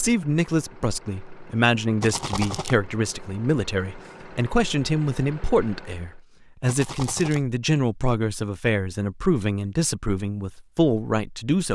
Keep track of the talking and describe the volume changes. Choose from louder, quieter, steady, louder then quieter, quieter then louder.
steady.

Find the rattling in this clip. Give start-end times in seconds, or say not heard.
2.0-2.8, 6.7-7.4.